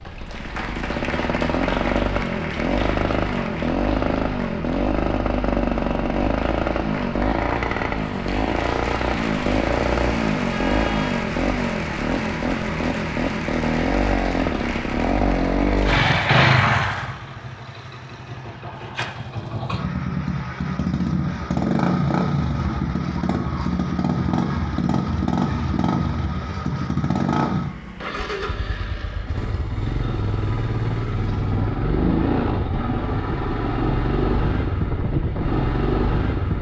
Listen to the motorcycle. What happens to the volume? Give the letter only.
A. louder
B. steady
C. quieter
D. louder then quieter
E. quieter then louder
B.